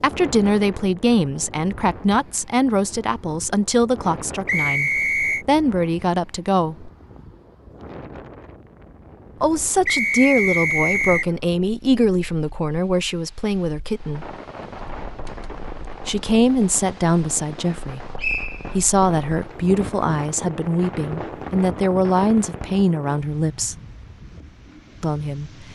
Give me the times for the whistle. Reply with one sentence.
The whistle can be heard from 4.5 to 5.5 s, from 9.8 to 11.3 s and from 18.1 to 18.8 s.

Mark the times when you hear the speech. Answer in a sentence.
You can hear the speech from 0.0 to 6.9 s, from 9.4 to 14.3 s, from 16.1 to 18.0 s, from 18.8 to 23.8 s and from 25.0 to 25.5 s.